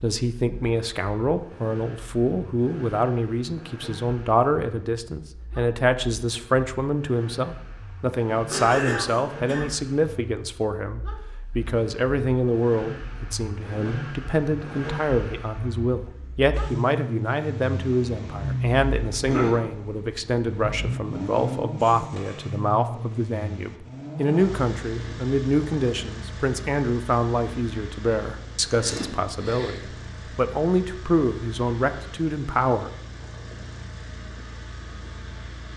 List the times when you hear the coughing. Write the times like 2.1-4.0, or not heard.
8.5-9.7, 19.1-19.6, 28.6-29.8.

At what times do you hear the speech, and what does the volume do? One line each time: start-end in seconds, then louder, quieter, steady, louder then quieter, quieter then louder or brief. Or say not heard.
0.0-32.9 steady.